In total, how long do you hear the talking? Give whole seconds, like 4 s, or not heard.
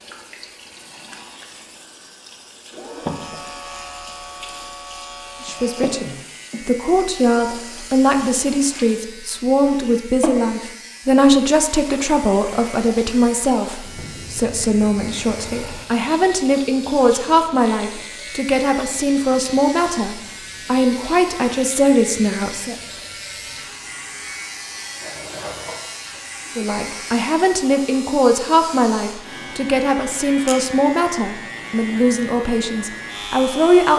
25 s.